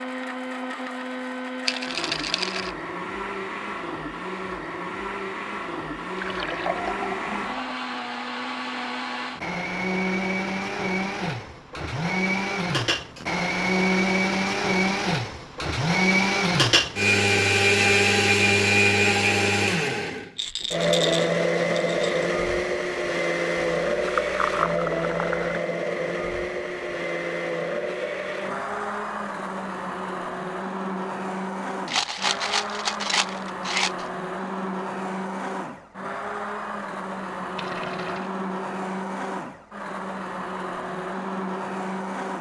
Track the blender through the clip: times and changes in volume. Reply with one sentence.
You can hear the blender from 0.0 to 42.3 s, getting louder then quieter.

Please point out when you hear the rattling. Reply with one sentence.
The rattling can be heard from 1.6 to 2.8 s, from 20.4 to 22.2 s and from 31.9 to 34.0 s.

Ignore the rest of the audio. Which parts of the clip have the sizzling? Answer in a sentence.
You can't hear the sizzling here.